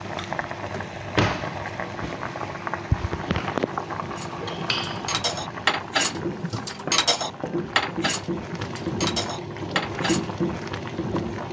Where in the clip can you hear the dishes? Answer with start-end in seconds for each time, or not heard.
4.2-10.7.